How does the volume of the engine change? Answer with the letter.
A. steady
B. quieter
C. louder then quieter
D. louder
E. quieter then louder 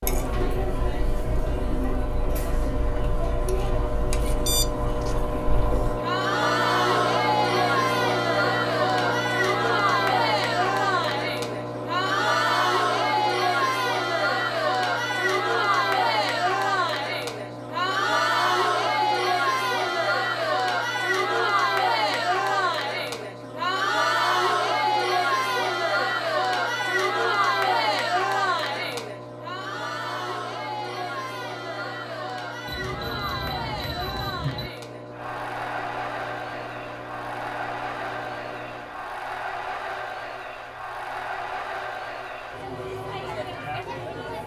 B.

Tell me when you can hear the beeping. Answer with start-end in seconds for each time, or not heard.
4.5-5.2, 32.6-34.7.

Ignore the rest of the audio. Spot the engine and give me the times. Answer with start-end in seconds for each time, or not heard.
0.0-39.2.